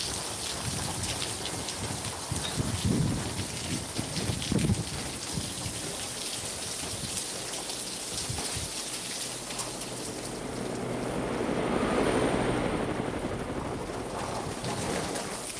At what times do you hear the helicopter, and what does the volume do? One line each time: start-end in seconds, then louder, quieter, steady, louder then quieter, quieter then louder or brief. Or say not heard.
0.1-15.5 louder.